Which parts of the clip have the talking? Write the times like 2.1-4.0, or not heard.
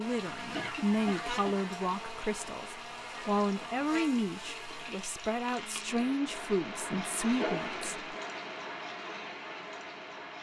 0.0-8.0.